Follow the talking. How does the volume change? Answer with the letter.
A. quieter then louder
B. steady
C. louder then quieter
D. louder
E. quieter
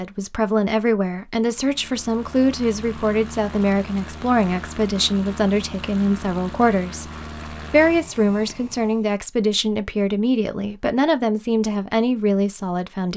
B.